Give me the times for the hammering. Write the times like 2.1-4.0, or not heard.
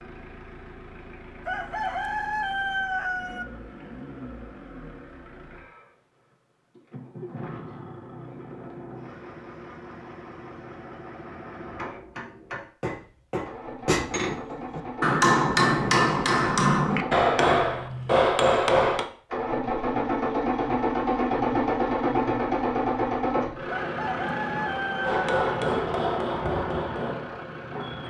11.6-19.1, 25.0-28.0.